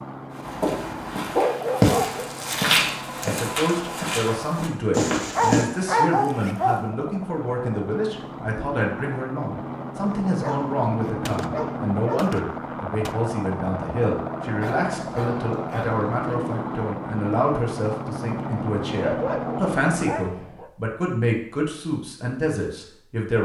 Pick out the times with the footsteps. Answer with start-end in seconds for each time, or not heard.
0.3-5.7.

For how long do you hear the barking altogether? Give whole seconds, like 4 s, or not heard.
9 s.